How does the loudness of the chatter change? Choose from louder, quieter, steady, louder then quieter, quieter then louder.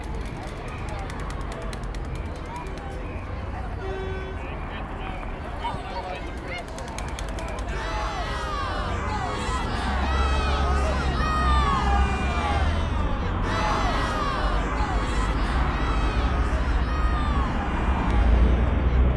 louder then quieter.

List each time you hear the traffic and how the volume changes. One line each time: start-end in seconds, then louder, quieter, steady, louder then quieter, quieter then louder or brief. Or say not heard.
0.0-19.1 louder.